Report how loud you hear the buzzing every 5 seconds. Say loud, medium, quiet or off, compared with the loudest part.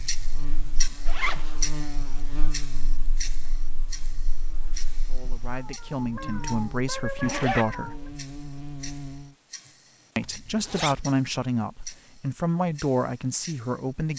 loud, loud, off.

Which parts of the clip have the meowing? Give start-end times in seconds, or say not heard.
5.5-8.1.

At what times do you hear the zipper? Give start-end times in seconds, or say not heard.
1.1-1.6, 7.2-7.7, 10.2-11.1.